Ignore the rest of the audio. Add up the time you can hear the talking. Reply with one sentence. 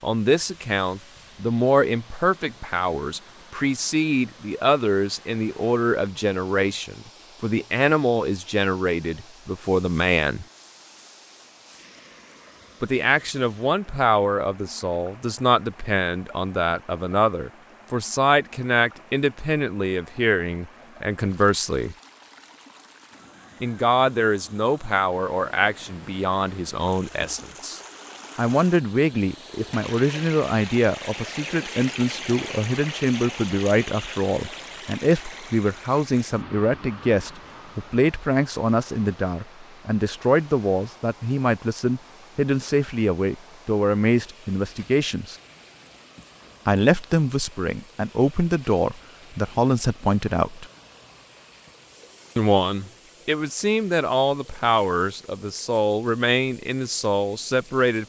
You can hear the talking for 51 seconds altogether.